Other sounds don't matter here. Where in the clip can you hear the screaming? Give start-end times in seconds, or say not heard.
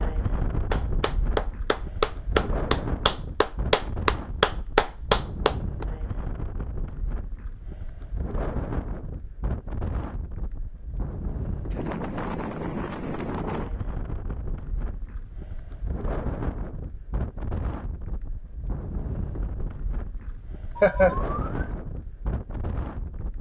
not heard.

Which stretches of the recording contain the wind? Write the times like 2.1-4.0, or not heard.
0.0-23.3.